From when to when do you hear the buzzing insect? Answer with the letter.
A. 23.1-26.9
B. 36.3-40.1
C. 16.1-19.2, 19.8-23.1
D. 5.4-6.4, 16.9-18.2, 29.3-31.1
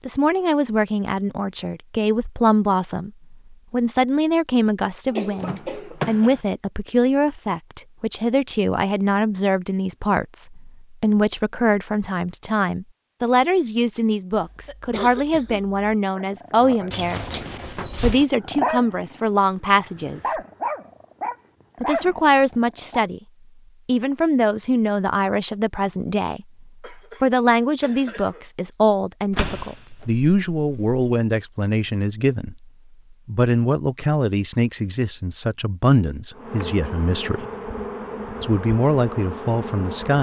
B.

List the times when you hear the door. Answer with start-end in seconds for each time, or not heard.
5.4-6.4, 16.9-18.2, 29.3-31.1.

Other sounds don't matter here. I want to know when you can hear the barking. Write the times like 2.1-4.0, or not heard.
16.1-19.2, 19.8-23.1.